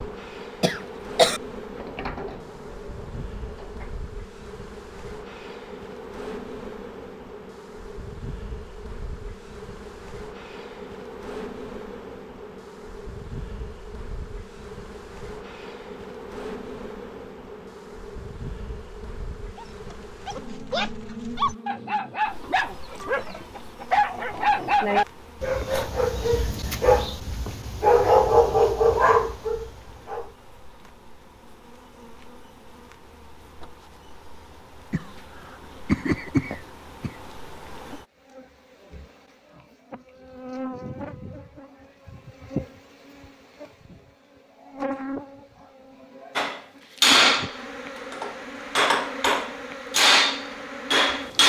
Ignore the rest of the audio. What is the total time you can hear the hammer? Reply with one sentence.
You can hear the hammer for 5 seconds altogether.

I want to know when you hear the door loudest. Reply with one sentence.
The volume of the door peaks at 2 seconds.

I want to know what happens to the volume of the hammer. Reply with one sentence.
The volume of the hammer goes down, then up.